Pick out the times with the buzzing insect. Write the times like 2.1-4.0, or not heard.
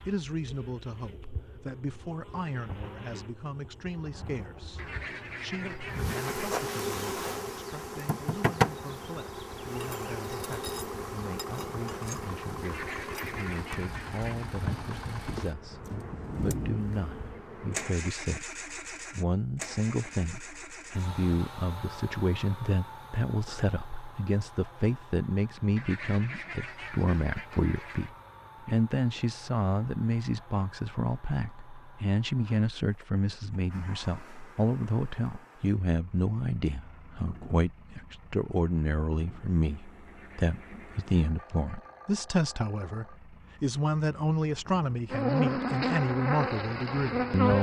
0.0-17.9, 45.1-47.5.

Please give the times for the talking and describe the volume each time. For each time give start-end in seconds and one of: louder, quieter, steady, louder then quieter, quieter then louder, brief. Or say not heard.
0.1-47.5 louder.